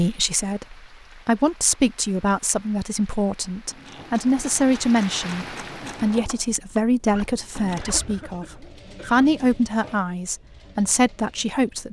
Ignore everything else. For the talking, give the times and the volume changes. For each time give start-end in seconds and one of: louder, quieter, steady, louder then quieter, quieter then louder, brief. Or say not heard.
0.0-11.8 steady.